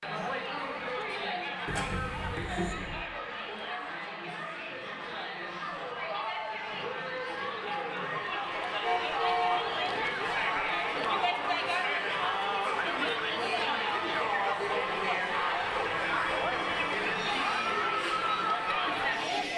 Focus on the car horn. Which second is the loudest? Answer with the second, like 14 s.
9 s.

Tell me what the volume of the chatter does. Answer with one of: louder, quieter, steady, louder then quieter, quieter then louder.
louder.